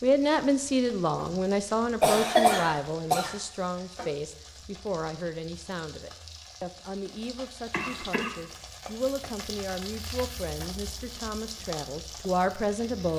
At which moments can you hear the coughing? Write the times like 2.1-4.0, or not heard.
2.0-3.4, 7.7-8.3.